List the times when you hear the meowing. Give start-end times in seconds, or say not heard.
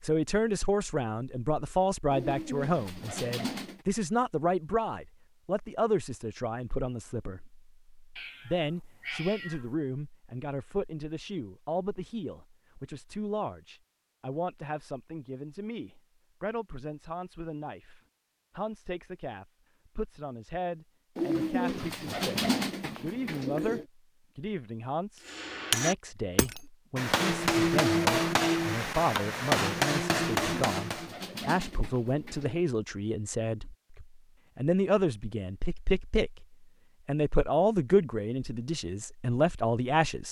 8.2-9.7.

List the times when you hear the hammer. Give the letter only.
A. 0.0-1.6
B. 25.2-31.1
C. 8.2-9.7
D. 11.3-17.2
B.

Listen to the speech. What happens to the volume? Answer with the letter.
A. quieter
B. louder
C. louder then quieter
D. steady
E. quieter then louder
E.